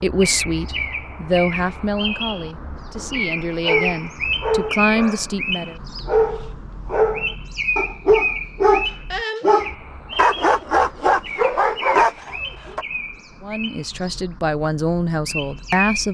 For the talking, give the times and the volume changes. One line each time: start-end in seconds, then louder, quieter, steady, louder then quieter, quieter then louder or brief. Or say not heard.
0.0-5.8 quieter then louder
13.4-16.0 brief.